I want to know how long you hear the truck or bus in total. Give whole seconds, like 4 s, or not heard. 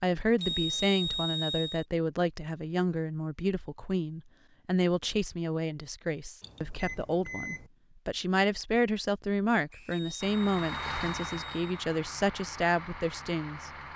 4 s.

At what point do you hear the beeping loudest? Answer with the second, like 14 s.
1 s.